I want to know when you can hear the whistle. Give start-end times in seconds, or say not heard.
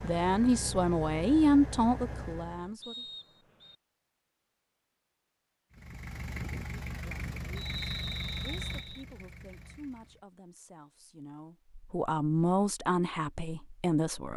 2.8-3.8, 7.5-9.1.